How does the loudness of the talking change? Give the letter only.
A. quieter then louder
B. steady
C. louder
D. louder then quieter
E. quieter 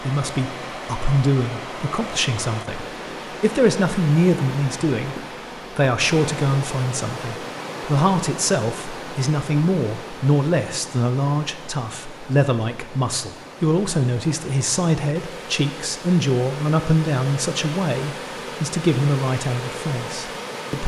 B.